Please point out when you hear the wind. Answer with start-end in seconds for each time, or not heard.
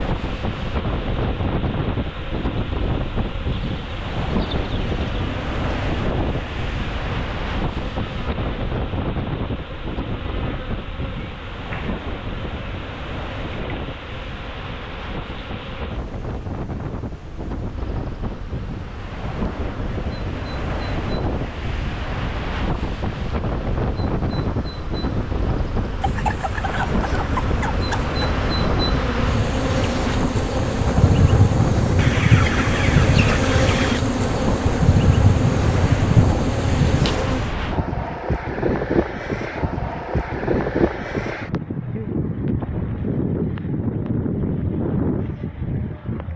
0.0-46.3.